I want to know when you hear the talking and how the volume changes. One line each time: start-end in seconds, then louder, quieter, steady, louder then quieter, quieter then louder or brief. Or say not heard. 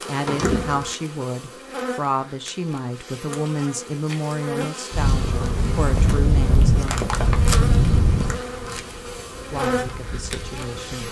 0.1-7.1 steady
9.5-11.0 brief.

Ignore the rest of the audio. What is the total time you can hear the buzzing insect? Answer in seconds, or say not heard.
11 s.